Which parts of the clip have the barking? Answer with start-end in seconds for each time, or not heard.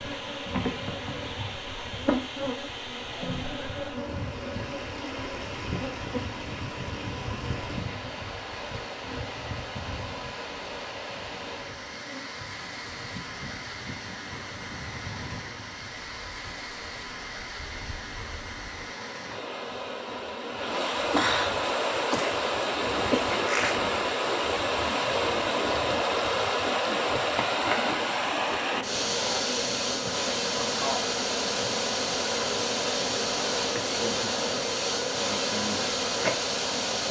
not heard.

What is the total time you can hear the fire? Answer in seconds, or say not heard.
not heard.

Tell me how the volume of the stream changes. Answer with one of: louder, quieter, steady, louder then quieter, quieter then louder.
louder.